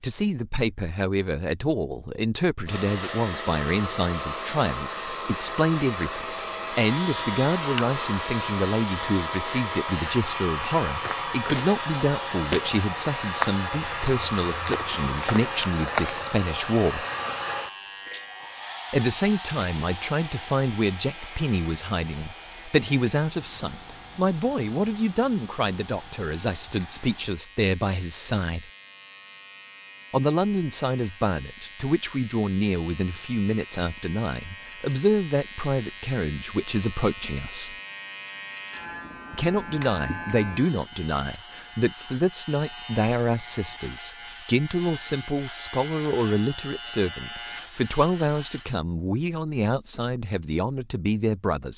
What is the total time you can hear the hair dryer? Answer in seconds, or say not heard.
25 s.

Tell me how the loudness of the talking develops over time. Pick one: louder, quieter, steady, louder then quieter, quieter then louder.
steady.